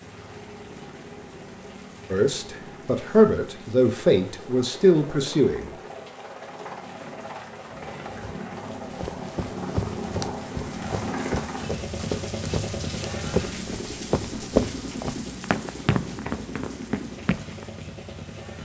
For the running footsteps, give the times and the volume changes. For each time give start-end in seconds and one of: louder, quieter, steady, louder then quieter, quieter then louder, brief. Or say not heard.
8.9-17.6 louder then quieter.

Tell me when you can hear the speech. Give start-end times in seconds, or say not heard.
2.1-5.7.